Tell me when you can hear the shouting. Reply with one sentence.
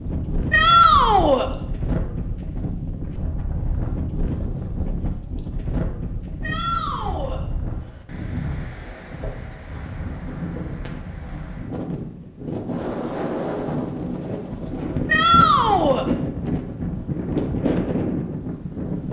The shouting can be heard from 0.5 to 1.5 s, from 6.4 to 7.4 s and from 15.1 to 16.1 s.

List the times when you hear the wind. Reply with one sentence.
You can hear the wind from 0.0 to 19.0 s.